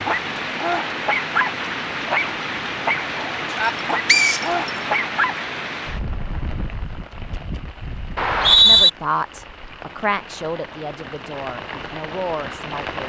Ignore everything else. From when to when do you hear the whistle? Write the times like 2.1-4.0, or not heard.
4.0-4.7, 8.2-8.9.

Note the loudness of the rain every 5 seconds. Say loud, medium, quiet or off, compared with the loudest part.
loud, medium, medium.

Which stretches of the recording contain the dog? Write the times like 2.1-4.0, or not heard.
0.0-5.5.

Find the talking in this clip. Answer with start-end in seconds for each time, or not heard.
8.6-13.0.